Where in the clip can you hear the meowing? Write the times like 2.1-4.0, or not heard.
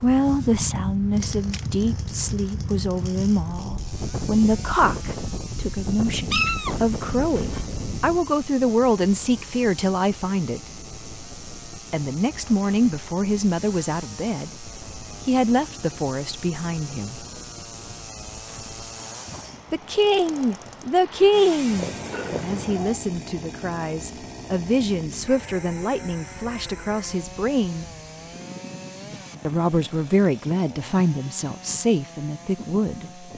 6.3-7.7, 21.7-23.0.